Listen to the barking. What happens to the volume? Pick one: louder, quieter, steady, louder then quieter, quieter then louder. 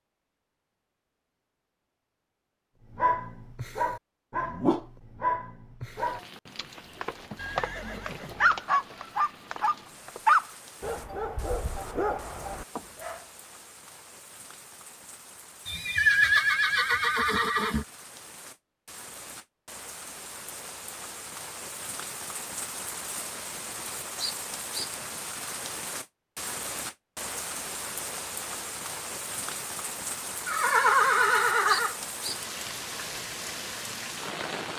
louder then quieter.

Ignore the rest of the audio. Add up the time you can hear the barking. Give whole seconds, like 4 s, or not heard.
10 s.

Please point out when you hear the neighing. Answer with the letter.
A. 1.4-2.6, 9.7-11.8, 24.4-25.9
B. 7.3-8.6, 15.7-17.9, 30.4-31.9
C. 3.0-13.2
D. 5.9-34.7
B.